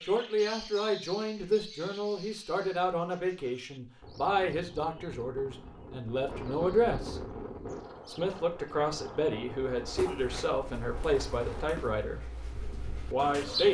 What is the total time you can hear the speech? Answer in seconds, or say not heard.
12 s.